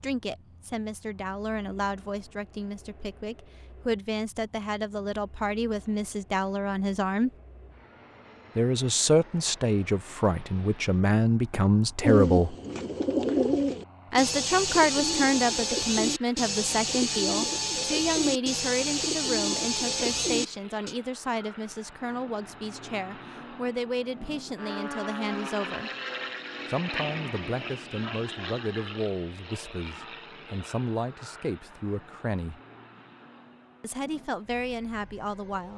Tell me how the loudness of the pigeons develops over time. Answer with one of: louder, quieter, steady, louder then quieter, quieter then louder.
steady.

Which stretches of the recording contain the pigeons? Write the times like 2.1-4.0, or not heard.
12.0-20.9.